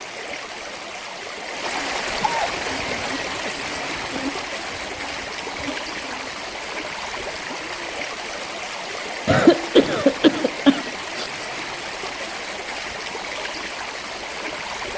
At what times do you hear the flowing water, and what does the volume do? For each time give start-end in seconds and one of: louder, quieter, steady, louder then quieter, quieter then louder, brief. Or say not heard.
0.0-14.9 steady.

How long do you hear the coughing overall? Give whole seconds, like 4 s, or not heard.
4 s.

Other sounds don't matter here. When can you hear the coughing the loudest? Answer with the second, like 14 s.
10 s.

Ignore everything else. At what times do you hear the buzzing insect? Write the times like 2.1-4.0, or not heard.
2.5-6.5.